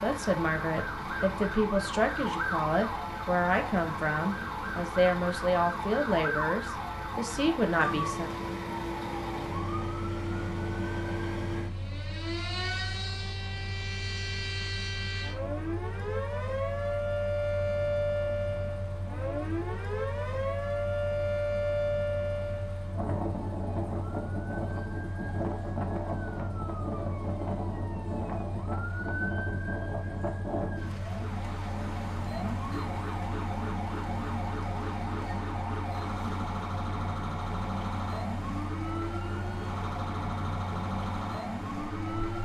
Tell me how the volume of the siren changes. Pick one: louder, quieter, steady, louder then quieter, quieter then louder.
steady.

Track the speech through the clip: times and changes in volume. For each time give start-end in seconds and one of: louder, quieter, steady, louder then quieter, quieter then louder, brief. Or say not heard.
0.0-8.3 steady.